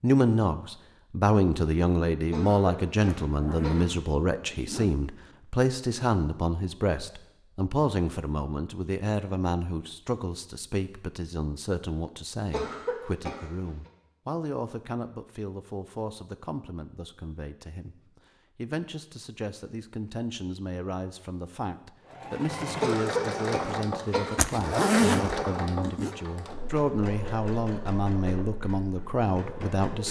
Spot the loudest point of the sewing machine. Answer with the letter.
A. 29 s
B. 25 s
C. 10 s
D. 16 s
B.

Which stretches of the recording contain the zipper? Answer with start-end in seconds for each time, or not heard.
3.2-5.0, 24.4-26.1.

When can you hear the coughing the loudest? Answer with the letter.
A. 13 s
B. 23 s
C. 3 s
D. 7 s
B.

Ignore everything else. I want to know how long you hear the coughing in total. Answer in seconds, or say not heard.
5 s.